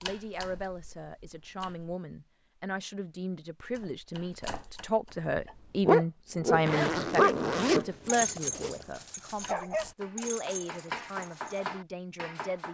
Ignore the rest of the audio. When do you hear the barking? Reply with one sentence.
You can hear the barking from 5.8 to 11.7 s.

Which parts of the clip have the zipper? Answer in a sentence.
You can hear the zipper from 6.5 to 8.8 s.